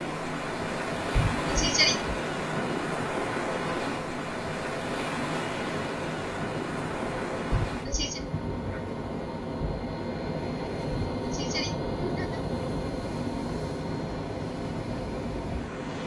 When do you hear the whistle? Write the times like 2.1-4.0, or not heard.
not heard.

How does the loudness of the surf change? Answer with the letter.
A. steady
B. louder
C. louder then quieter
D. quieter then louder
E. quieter
E.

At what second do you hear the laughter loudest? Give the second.
2 s.